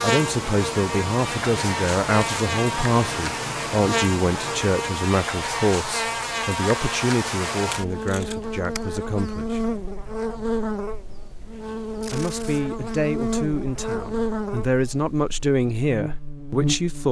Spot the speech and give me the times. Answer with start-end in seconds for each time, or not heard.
0.0-9.6, 12.1-17.0.